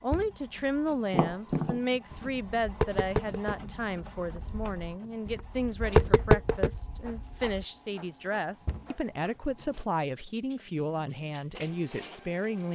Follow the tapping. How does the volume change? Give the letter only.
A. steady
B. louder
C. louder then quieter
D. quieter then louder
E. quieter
D.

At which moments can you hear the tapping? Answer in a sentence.
You can hear the tapping from 1.1 to 7.7 s.